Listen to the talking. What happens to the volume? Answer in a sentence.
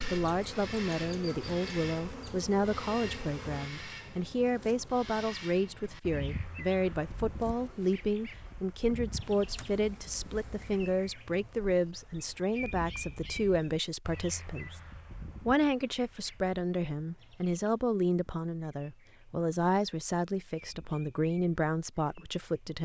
The loudness of the talking stays about the same.